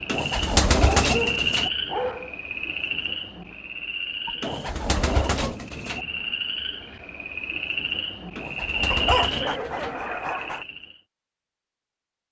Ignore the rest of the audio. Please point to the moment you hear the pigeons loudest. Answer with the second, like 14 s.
1 s.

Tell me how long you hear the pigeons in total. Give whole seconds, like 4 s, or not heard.
5 s.